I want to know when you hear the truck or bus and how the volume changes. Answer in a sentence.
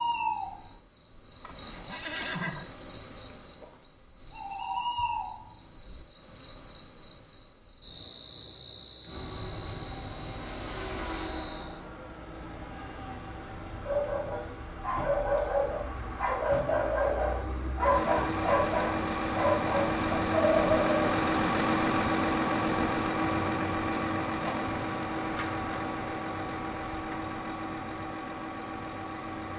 You can hear the truck or bus from 9.1 to 29.5 s, getting louder then quieter.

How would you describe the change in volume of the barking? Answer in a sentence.
The loudness of the barking stays about the same.